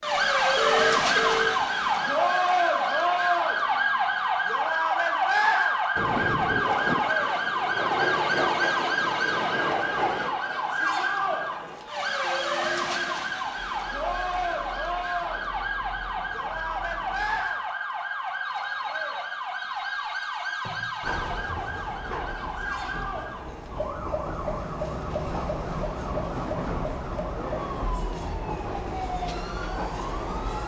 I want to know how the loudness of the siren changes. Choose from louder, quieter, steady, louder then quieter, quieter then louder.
quieter.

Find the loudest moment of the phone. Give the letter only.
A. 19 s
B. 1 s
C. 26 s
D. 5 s
B.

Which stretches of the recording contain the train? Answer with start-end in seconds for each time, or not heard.
6.0-17.4, 21.0-30.6.